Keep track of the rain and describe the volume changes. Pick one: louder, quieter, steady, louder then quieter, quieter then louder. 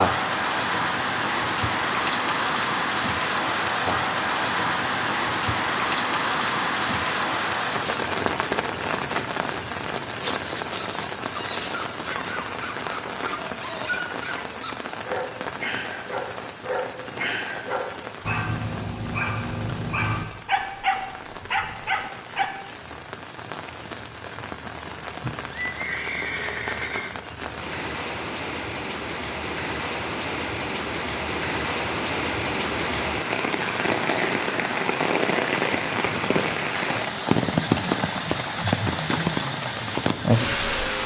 quieter then louder.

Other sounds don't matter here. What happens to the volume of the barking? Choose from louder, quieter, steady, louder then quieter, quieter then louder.
louder.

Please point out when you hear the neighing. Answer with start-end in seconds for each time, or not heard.
25.2-27.1.